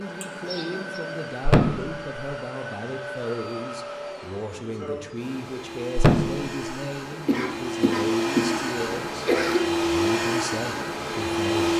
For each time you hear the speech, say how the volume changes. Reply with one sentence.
The speech can be heard from 0.0 to 11.7 s, at a steady volume.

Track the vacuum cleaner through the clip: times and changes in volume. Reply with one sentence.
The vacuum cleaner can be heard from 0.0 to 11.7 s, getting louder.